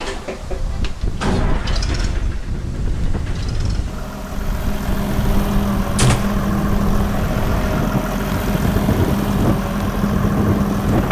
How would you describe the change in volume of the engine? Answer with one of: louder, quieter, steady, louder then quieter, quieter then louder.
quieter then louder.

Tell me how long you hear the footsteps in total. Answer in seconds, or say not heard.
not heard.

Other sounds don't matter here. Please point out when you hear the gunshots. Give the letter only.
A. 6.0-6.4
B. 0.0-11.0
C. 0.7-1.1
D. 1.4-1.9
A.